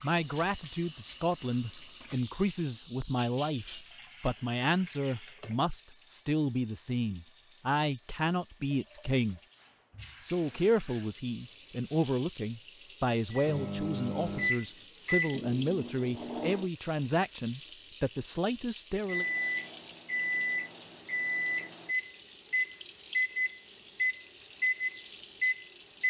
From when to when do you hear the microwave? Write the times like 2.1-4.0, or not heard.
13.3-16.6, 19.1-26.0.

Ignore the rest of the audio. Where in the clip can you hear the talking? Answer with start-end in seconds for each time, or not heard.
0.0-9.4, 10.2-19.2.